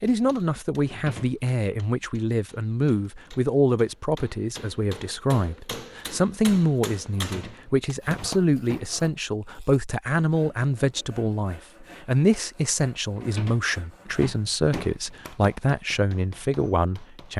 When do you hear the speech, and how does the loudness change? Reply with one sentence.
The speech can be heard from 0.0 to 17.3 s, at a steady volume.